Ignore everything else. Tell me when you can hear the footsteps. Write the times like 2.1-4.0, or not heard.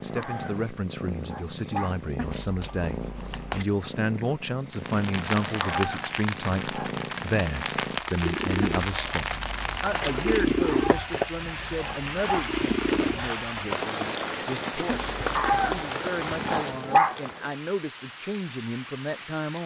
not heard.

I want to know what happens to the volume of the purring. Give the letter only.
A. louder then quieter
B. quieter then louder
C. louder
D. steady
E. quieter
C.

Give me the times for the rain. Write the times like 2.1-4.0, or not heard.
4.7-19.6.